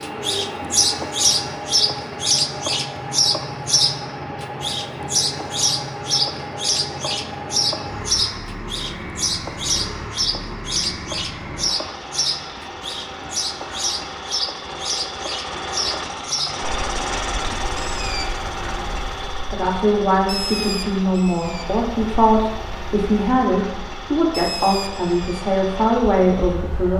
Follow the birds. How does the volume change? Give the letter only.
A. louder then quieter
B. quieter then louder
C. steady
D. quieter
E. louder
D.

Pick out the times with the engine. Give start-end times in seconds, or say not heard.
0.0-26.9.